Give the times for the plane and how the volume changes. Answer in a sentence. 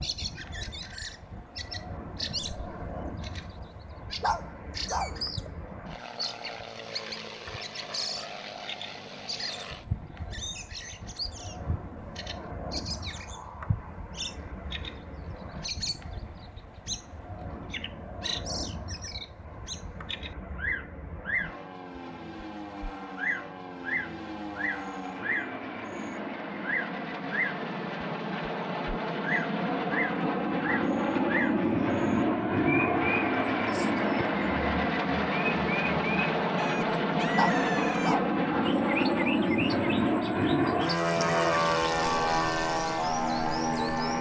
The plane can be heard from 0.0 to 44.1 s, getting louder.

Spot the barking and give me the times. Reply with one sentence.
The barking can be heard from 4.2 to 5.2 s and from 37.4 to 38.4 s.